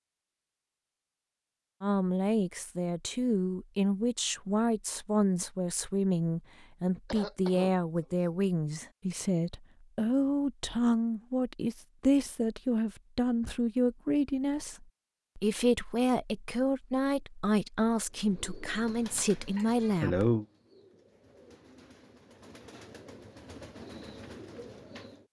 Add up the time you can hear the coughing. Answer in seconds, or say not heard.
2 s.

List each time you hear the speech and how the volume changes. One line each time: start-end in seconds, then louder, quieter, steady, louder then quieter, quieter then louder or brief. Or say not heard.
1.8-20.3 steady.